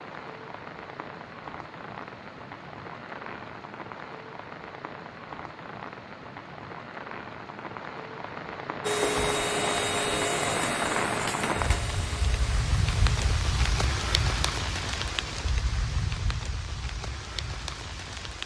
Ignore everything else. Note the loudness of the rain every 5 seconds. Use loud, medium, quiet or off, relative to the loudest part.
medium, medium, loud, medium.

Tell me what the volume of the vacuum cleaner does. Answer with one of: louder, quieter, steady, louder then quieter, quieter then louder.
quieter.